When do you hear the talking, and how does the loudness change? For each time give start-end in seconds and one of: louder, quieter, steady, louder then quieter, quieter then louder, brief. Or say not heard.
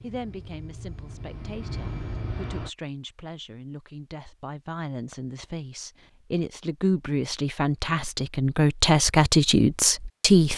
0.0-10.5 louder.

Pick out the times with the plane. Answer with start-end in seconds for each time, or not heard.
0.0-2.7.